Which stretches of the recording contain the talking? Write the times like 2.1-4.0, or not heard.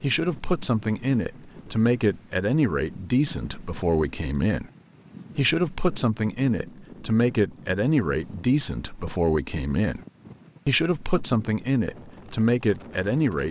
0.0-4.7, 5.3-10.0, 10.7-13.4.